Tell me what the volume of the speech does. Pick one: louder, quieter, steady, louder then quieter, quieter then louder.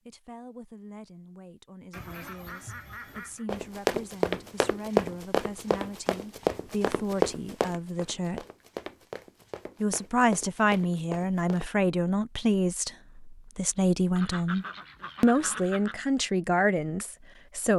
louder.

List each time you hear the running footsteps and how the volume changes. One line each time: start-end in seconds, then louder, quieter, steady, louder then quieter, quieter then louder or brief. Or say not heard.
3.5-11.7 quieter.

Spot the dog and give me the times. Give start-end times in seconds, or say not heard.
not heard.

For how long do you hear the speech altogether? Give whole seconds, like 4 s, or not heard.
16 s.